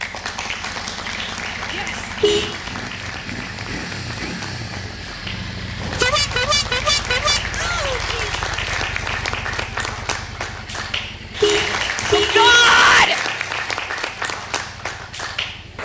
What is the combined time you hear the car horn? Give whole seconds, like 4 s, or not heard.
4 s.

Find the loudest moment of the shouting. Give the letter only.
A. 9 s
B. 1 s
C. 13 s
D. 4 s
C.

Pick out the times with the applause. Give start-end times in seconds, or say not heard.
0.0-15.8.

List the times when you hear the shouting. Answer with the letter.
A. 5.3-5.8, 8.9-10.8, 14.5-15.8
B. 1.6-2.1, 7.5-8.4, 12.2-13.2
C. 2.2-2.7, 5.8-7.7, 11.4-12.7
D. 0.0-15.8
B.